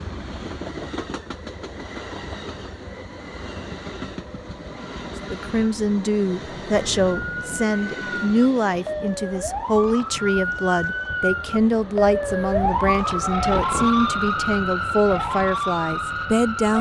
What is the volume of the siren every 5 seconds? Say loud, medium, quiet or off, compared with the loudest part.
off, medium, loud, loud.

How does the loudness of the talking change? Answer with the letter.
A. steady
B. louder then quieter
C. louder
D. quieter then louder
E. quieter
A.